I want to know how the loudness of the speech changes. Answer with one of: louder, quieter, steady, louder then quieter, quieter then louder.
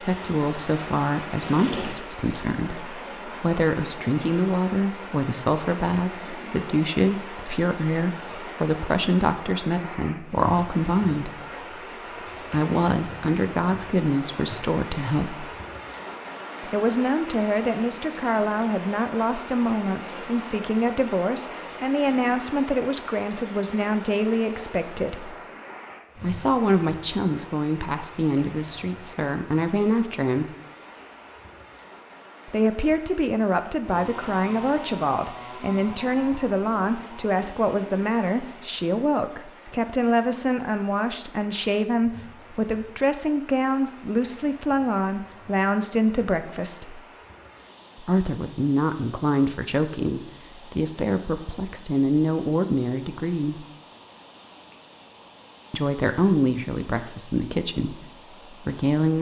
steady.